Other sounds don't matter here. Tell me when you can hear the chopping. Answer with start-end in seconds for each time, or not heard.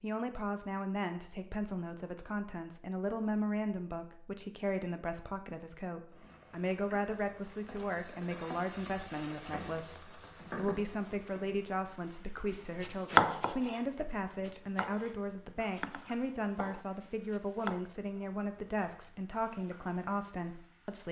12.5-13.8, 14.4-17.9.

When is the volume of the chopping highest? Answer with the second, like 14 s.
13 s.